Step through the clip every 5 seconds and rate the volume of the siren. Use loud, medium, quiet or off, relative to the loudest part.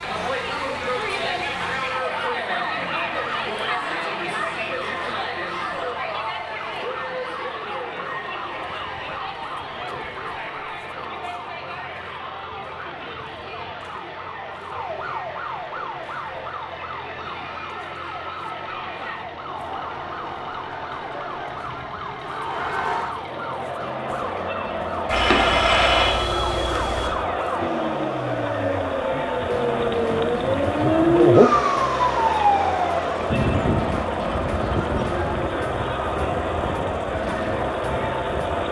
quiet, quiet, quiet, quiet, quiet, medium, loud, quiet.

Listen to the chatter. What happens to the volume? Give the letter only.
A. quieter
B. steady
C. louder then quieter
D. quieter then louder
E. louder
D.